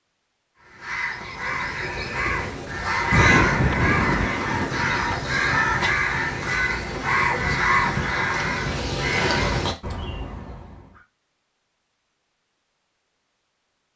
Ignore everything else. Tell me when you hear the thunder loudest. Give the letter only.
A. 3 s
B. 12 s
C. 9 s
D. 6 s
A.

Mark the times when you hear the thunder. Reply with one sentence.
The thunder can be heard from 2.9 to 5.9 s.